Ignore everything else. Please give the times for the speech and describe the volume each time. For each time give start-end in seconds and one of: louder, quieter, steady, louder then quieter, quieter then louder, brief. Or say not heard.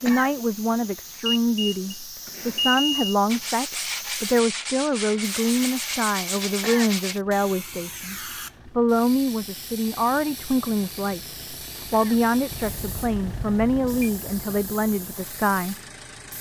0.0-15.8 steady.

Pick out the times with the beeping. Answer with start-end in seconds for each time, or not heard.
1.2-3.1, 12.5-14.1.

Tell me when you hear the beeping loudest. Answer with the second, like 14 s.
3 s.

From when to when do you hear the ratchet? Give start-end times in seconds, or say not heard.
not heard.